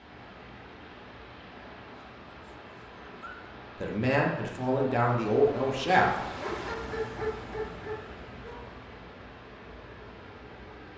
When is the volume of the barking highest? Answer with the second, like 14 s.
7 s.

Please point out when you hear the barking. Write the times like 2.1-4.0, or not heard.
1.9-3.5, 6.4-8.7.